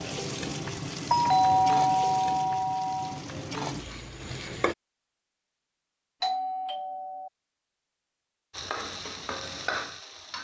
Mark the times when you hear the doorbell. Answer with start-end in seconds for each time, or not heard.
1.1-3.2, 6.2-7.3.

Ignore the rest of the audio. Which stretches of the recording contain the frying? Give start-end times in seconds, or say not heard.
0.0-4.8, 8.5-10.3.